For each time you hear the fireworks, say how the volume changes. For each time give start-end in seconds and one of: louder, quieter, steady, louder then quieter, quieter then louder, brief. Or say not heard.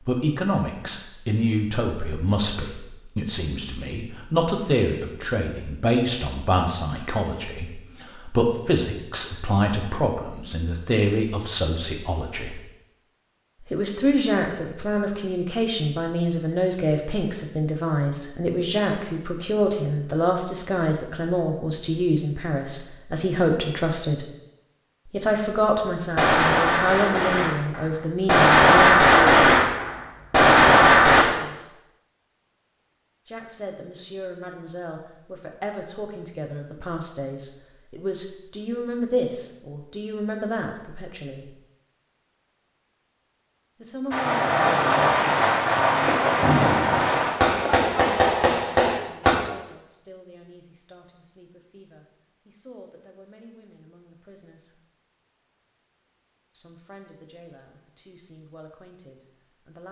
26.1-31.2 quieter then louder
44.1-49.4 steady.